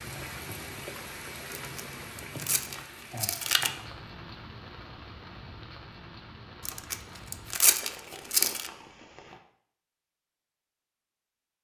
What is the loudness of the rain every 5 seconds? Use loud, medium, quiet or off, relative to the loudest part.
loud, medium, off.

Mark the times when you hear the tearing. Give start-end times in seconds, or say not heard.
1.5-3.7, 6.7-8.7.